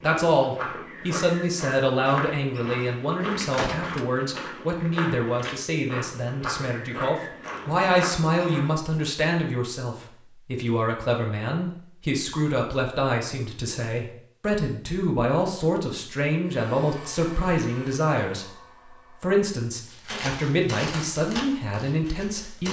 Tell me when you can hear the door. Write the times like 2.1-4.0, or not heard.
3.2-4.0.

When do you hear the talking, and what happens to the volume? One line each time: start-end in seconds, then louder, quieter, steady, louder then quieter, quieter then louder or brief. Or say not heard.
0.0-22.6 steady.